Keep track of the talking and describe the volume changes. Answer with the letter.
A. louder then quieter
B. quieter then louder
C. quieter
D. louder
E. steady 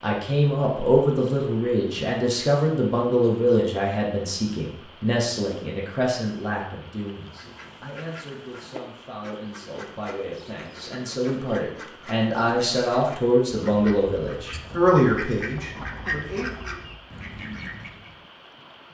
B.